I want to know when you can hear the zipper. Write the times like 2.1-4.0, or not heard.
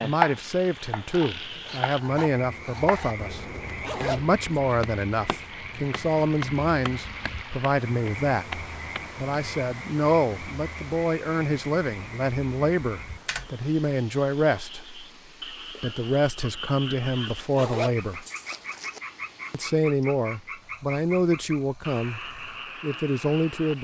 3.8-4.4, 17.2-19.0.